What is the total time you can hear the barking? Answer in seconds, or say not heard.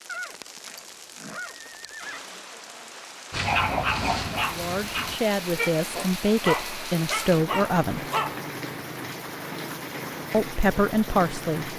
5 s.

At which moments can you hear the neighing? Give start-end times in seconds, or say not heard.
0.1-2.2.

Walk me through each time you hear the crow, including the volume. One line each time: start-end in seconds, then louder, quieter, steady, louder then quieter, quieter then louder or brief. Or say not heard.
not heard.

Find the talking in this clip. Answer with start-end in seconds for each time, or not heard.
4.5-8.1, 10.3-11.7.